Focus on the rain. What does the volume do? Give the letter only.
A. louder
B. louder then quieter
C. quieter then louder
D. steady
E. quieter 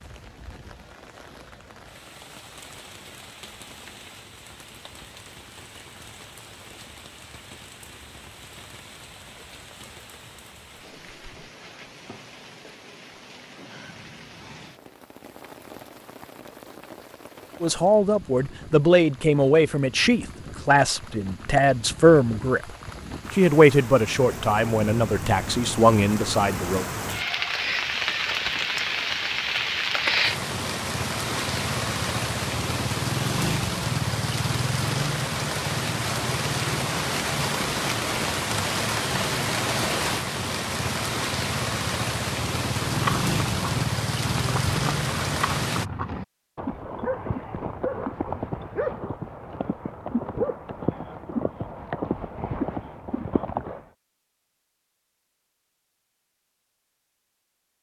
A.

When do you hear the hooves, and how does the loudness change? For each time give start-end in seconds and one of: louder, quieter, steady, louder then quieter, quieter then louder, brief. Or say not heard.
42.9-53.9 steady.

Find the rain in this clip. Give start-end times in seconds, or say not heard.
0.0-45.9.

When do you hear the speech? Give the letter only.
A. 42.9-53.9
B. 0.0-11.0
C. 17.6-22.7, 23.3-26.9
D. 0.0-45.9
C.